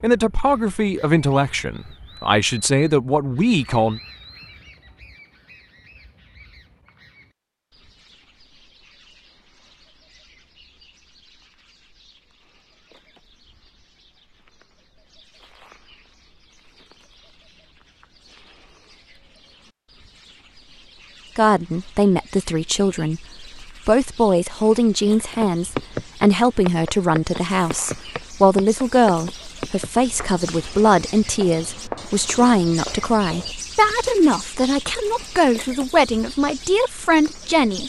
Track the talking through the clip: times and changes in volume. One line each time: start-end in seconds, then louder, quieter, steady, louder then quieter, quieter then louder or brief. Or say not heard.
0.0-4.0 quieter then louder
21.4-37.8 steady.